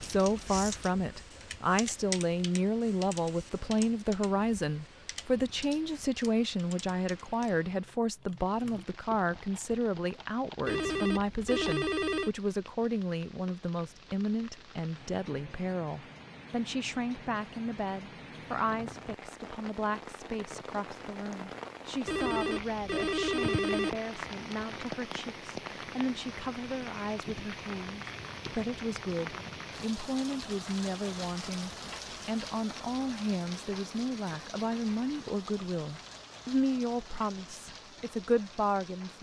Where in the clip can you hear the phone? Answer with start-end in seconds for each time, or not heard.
10.7-12.3, 22.1-23.9.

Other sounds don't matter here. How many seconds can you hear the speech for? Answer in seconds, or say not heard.
39 s.